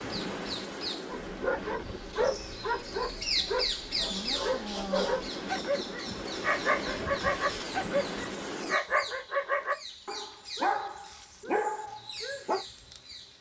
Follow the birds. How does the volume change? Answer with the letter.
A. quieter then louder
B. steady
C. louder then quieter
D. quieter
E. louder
C.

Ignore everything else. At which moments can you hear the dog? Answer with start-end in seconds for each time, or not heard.
1.1-12.7.